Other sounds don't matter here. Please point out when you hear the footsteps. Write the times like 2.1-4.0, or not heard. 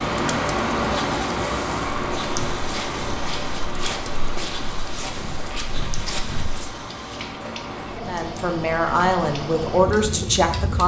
2.0-6.7.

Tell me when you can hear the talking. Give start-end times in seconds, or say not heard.
8.1-10.8.